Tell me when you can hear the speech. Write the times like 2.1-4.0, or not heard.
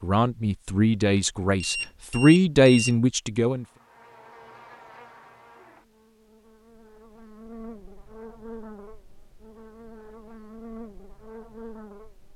0.0-3.6.